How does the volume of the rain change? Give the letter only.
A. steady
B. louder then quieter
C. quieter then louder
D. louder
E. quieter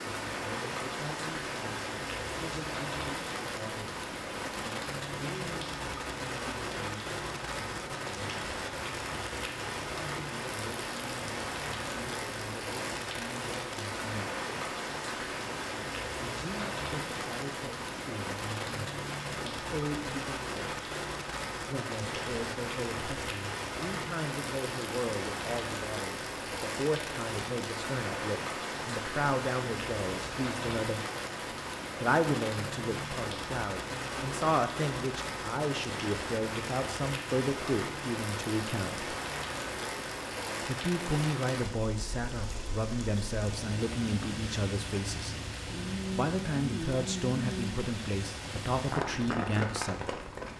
A.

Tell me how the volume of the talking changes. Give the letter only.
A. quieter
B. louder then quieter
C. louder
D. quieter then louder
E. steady
C.